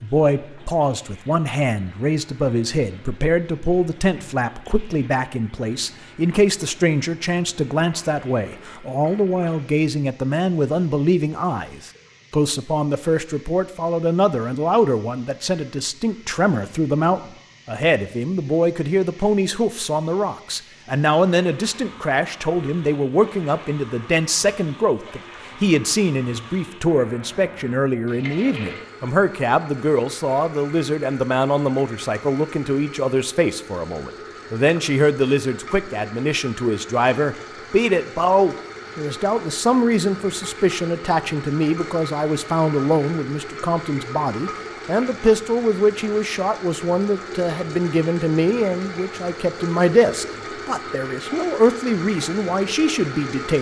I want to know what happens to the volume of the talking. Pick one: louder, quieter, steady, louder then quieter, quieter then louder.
steady.